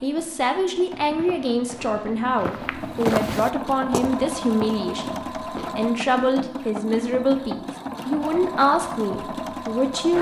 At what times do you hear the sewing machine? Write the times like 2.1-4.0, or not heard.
0.0-10.1.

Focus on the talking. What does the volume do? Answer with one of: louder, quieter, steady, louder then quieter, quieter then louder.
steady.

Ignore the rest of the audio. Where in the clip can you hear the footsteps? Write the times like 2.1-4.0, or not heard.
0.9-5.8.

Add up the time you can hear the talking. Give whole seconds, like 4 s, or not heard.
10 s.